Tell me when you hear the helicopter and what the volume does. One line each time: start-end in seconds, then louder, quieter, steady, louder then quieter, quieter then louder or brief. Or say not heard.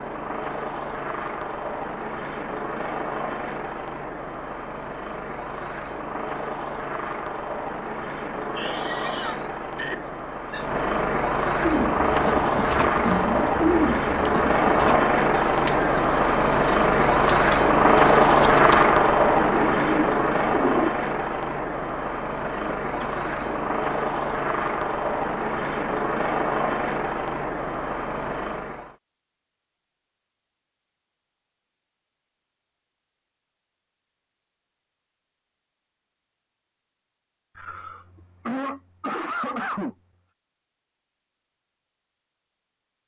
0.0-28.9 louder then quieter.